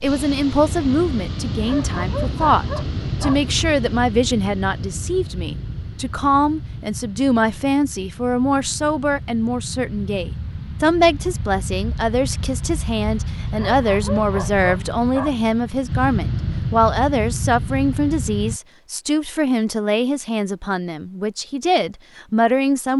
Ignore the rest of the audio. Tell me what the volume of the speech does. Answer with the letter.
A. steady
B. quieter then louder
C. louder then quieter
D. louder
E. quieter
A.